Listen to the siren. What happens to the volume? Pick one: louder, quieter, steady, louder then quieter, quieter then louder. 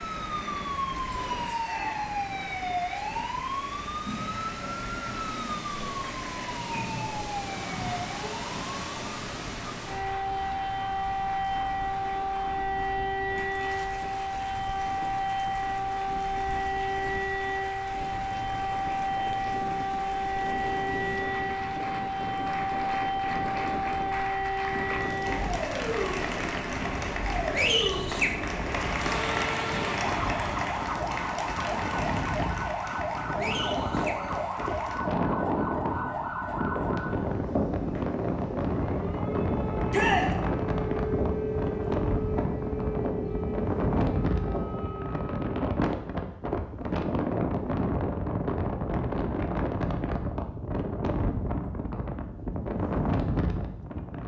steady.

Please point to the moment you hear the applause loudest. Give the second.
28 s.